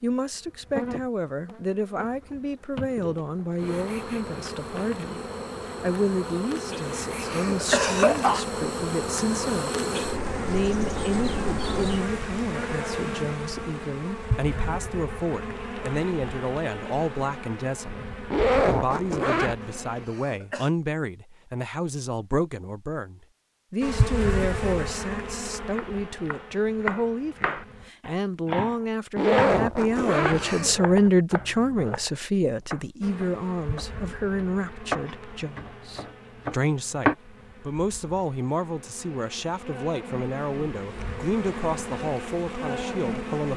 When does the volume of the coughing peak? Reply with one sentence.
The loudest moment of the coughing is at 8 seconds.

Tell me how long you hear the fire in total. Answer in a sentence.
The fire can't be heard in this clip.